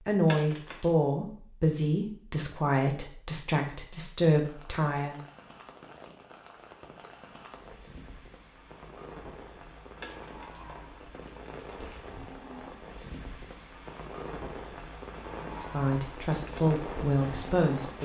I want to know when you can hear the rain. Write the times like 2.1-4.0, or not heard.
4.3-17.9.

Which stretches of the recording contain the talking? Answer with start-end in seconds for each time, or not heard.
0.1-5.2, 15.5-17.9.